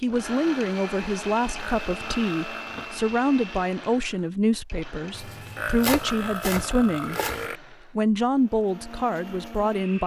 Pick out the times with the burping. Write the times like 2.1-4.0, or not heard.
1.6-3.0, 5.5-7.6.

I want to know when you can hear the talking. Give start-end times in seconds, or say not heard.
0.0-7.2, 8.0-10.0.